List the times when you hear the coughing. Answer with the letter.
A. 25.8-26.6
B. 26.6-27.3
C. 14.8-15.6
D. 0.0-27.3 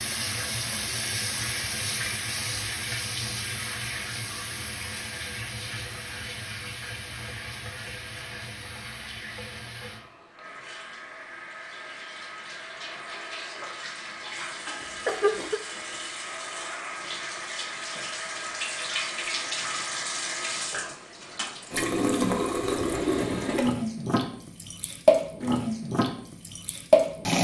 C.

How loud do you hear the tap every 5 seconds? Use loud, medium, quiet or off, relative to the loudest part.
medium, quiet, quiet, medium, medium, loud.